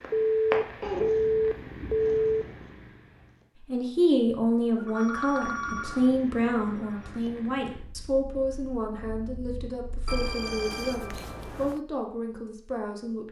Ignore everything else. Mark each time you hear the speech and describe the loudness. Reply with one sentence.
The speech can be heard from 3.6 to 13.2 s, getting quieter.